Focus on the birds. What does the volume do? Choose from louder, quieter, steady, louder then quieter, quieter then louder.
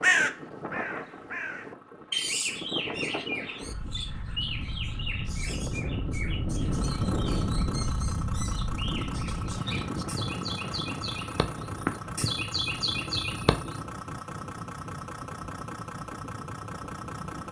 quieter then louder.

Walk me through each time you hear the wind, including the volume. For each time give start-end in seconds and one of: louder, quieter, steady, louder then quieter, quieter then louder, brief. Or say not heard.
0.0-17.4 louder then quieter.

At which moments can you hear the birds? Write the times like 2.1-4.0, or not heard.
0.0-13.8.